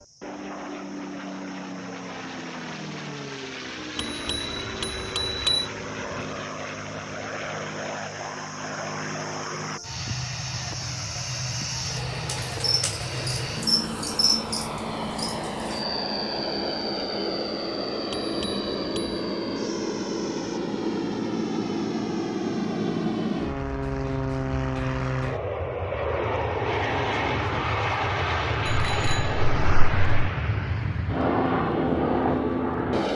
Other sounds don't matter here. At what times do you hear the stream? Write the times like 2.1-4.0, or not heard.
not heard.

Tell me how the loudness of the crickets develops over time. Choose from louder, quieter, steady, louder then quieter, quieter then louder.
louder then quieter.